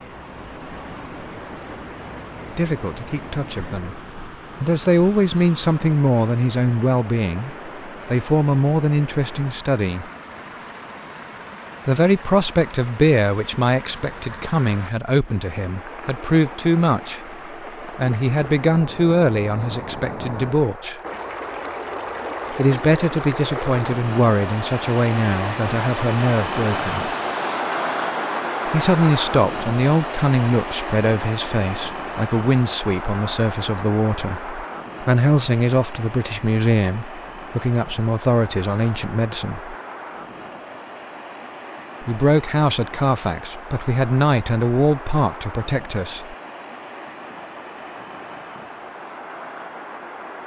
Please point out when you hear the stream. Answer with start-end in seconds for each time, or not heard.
0.0-50.4.